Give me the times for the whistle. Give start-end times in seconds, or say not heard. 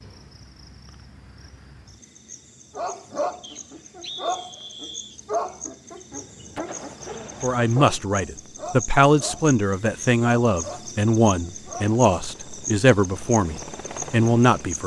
3.4-5.2.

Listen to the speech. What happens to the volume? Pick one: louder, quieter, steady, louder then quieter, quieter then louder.
steady.